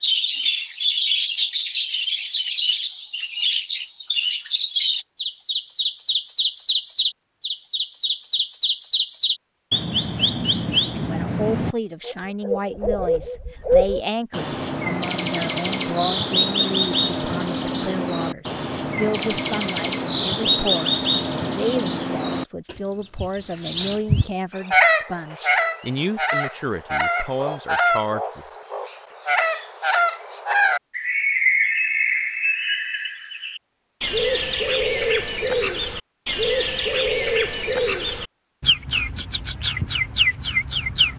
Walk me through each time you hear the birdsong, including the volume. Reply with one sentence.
The birdsong can be heard from 0.0 to 41.1 s, at a steady volume.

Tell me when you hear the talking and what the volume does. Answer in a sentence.
The talking can be heard from 10.9 to 28.6 s, at a steady volume.